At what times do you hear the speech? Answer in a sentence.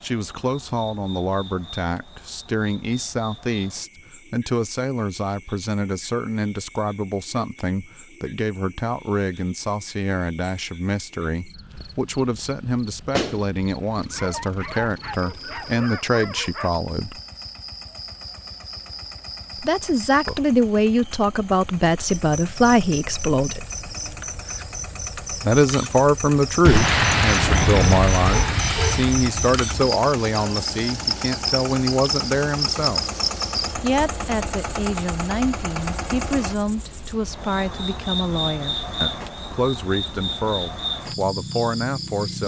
You can hear the speech from 0.0 to 17.2 s, from 19.6 to 23.6 s, from 25.4 to 33.0 s and from 33.8 to 42.4 s.